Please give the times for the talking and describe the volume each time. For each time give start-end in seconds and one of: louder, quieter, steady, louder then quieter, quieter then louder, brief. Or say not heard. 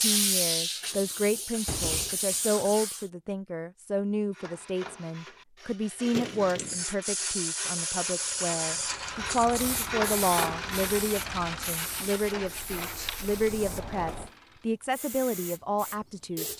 0.0-16.5 steady.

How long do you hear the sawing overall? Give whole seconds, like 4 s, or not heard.
9 s.